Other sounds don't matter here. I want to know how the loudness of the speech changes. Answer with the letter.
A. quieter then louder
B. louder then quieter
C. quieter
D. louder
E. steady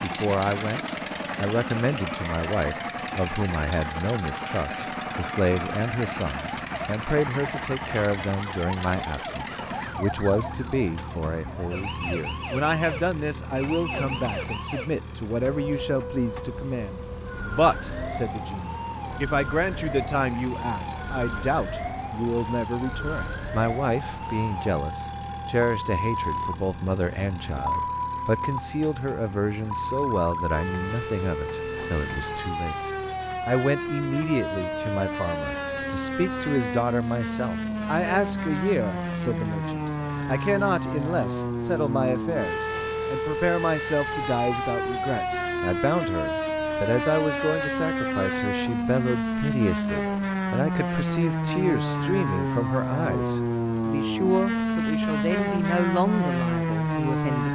E.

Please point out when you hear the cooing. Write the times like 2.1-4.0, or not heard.
not heard.